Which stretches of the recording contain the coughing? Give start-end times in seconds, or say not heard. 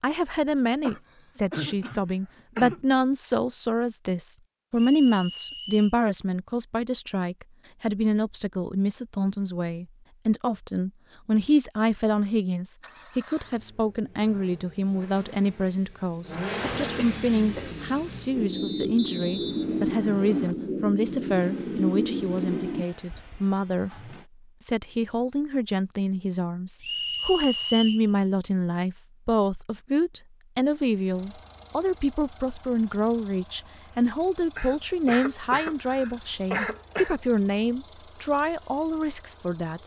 0.8-2.9, 16.6-17.8, 34.5-37.1.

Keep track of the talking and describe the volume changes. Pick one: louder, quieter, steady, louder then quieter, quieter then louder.
steady.